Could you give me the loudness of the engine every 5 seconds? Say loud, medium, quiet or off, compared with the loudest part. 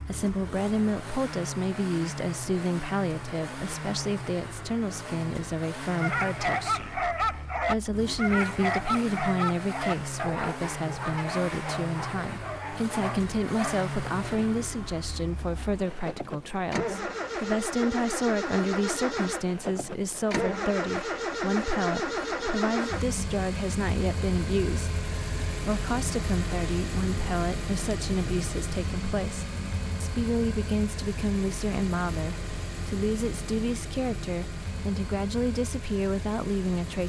medium, medium, medium, loud, loud, loud, medium, medium.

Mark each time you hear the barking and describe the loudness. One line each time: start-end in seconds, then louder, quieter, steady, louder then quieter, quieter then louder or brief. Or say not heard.
6.0-13.8 quieter.